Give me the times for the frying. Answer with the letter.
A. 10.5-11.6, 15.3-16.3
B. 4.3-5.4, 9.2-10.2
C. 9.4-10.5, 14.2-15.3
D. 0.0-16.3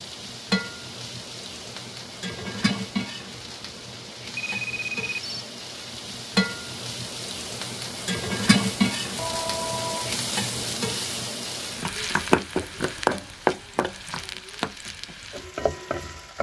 D.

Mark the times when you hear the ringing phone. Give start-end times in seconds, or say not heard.
4.3-5.4, 9.2-10.2.